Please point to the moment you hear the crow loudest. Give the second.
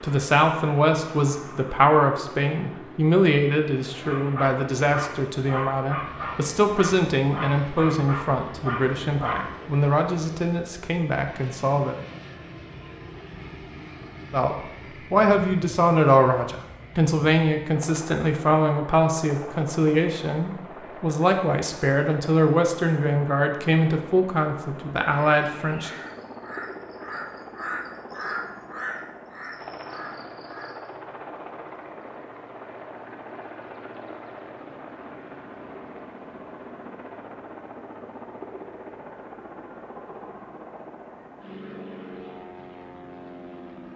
28 s.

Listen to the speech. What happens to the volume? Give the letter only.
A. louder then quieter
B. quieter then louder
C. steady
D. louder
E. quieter
C.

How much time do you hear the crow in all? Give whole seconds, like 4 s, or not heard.
6 s.